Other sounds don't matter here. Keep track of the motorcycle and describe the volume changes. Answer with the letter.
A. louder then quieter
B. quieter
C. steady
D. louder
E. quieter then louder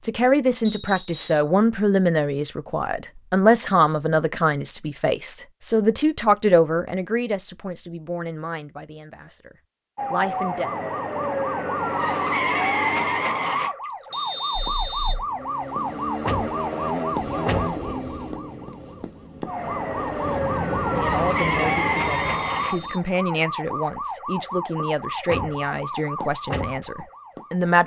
E.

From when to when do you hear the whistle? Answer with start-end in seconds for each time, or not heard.
0.7-1.5, 14.1-15.2, 21.9-23.0.